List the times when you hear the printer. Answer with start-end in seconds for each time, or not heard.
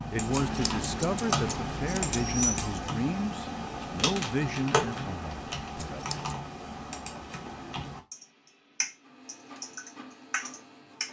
9.0-11.0.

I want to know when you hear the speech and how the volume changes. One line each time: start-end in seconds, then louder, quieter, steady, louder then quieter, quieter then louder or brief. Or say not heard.
0.1-6.2 quieter.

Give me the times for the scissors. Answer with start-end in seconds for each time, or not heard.
0.3-2.8, 5.8-6.3.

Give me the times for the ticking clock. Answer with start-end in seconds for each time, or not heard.
not heard.